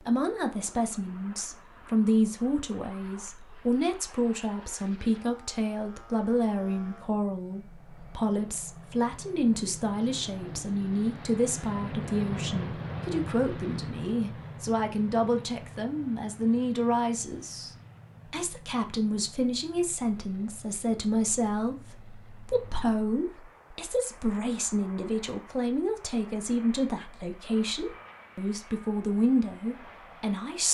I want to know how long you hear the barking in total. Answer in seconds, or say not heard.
not heard.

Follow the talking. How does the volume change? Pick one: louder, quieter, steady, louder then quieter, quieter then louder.
steady.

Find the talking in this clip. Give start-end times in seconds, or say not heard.
0.0-30.6.